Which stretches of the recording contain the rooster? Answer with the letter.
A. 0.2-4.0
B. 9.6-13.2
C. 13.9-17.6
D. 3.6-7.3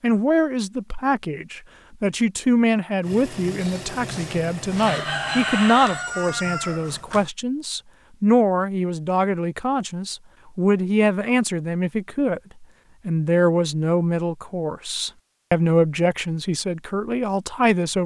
D.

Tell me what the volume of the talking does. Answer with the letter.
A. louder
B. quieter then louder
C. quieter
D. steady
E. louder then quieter
D.